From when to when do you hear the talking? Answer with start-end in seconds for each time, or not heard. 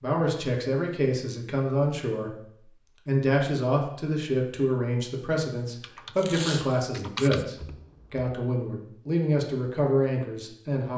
0.0-2.5, 3.0-10.9.